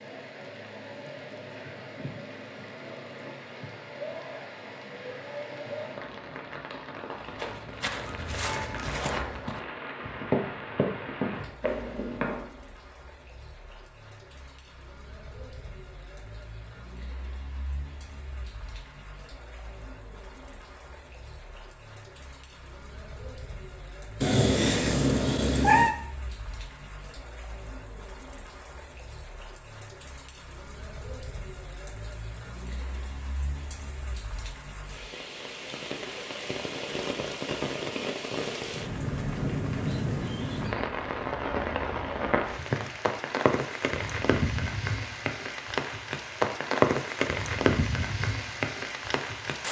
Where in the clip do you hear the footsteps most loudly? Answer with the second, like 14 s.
10 s.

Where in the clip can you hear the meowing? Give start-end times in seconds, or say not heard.
24.2-25.9.